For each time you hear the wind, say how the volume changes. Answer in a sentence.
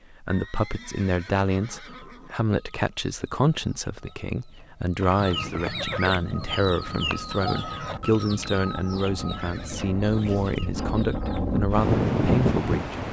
You can hear the wind from 6.2 to 13.0 s, getting louder.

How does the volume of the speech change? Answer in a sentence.
The loudness of the speech stays about the same.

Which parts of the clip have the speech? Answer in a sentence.
You can hear the speech from 0.1 to 13.0 s.